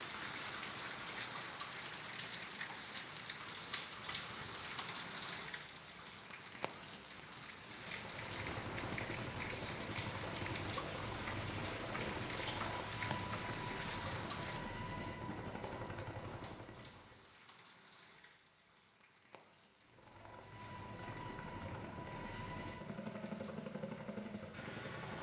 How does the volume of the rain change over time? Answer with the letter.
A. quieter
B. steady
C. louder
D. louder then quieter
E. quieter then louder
A.